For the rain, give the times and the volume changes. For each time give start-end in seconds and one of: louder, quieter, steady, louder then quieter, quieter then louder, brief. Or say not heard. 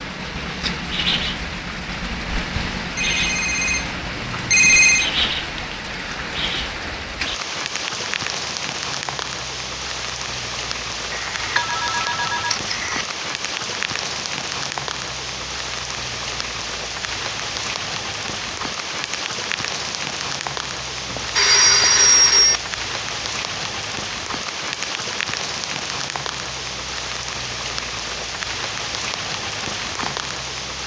0.0-30.8 steady.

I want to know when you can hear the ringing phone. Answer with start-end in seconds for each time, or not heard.
3.0-5.1, 11.1-13.1, 21.1-22.6.